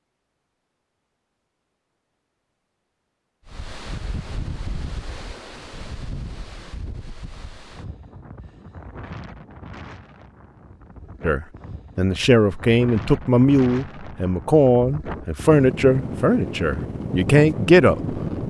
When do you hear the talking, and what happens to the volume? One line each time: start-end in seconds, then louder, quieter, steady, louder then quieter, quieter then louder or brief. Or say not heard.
11.2-18.2 steady.